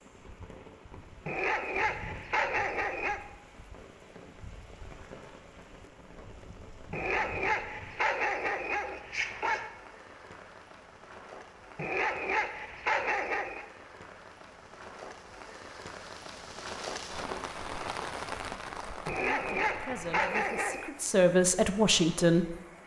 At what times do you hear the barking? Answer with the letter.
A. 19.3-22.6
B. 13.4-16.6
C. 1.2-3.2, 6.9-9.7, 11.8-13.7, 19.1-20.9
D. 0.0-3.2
C.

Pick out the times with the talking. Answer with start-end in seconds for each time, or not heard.
19.3-22.6.